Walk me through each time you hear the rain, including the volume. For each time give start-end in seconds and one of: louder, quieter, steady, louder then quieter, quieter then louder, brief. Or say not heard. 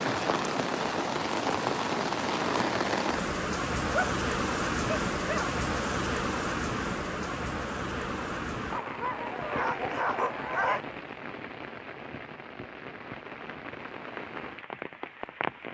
0.0-15.6 quieter.